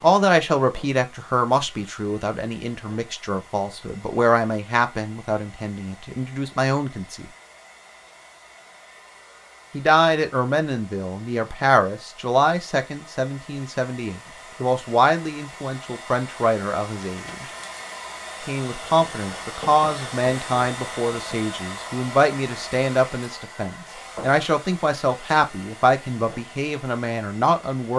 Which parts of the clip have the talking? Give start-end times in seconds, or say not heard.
0.0-7.2, 9.7-17.4, 18.4-27.9.